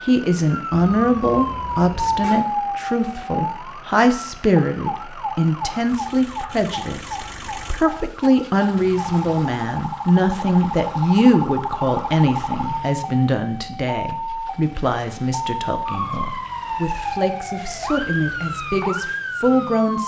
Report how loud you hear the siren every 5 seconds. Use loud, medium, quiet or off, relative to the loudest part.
loud, medium, loud, loud.